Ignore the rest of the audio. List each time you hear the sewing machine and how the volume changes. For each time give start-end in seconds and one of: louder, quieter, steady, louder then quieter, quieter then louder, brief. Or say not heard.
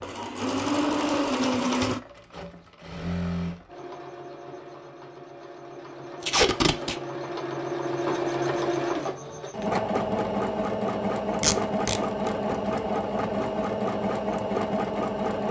0.0-15.4 quieter then louder.